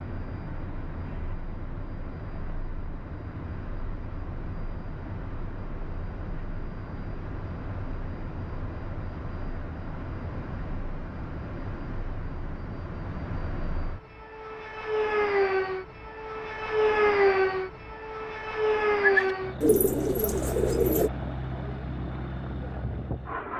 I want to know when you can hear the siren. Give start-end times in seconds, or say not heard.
not heard.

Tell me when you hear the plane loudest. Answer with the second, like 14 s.
17 s.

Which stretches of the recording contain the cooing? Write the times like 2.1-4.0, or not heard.
18.9-21.1.